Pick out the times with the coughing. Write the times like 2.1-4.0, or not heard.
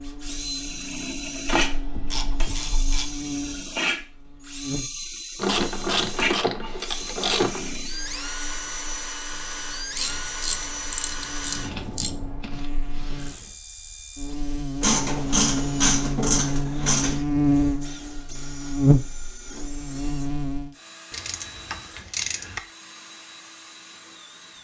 not heard.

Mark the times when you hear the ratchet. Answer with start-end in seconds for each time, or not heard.
1.4-3.2, 5.3-7.7, 9.9-12.1, 14.8-17.2, 21.1-22.6.